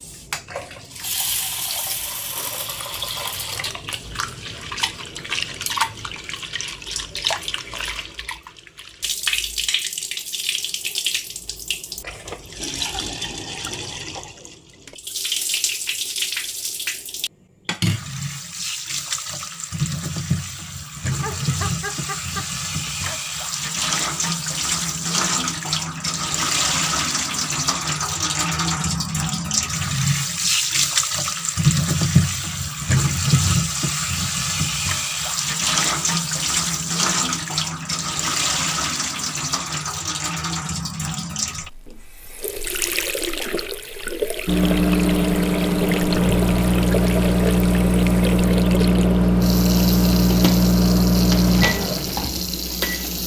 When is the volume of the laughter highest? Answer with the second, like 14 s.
22 s.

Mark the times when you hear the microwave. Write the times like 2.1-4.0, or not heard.
44.5-53.2.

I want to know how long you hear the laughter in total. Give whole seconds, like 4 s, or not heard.
2 s.